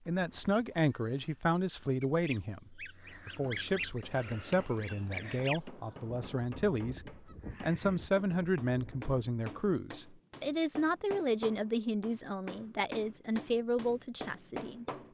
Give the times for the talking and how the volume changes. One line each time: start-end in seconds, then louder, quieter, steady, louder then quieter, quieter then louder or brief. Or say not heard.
0.1-14.8 steady.